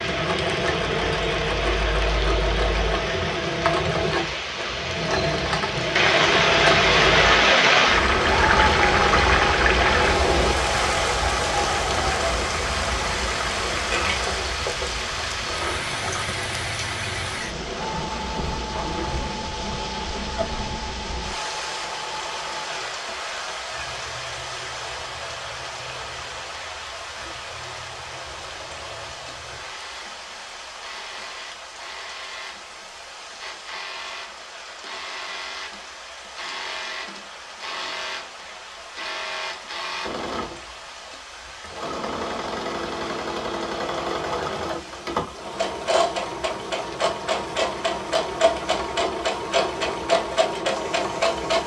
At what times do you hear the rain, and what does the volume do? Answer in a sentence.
The rain can be heard from 0.0 to 51.6 s, getting quieter.